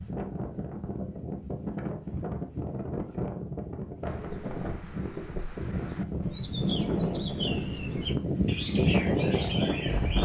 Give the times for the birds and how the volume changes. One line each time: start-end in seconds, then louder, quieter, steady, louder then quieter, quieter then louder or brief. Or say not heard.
4.0-10.1 louder.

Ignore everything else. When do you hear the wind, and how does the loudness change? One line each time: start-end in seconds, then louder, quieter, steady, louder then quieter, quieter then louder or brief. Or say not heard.
0.0-10.1 louder.